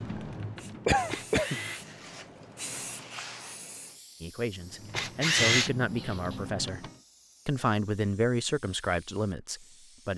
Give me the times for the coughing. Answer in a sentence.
You can hear the coughing from 0.8 to 1.6 s.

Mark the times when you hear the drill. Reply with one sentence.
The drill can be heard from 0.0 to 3.0 s and from 4.5 to 6.9 s.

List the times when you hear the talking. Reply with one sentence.
The talking can be heard from 4.2 to 10.1 s.